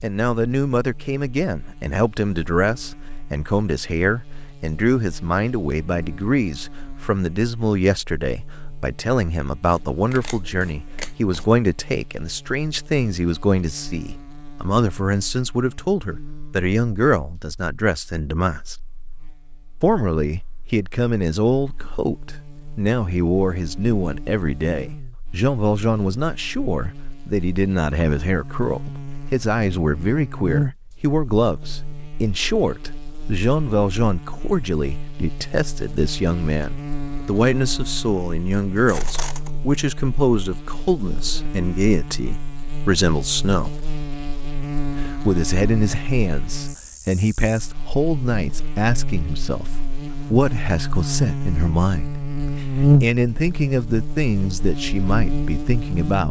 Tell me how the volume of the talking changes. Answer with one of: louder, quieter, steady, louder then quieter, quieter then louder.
steady.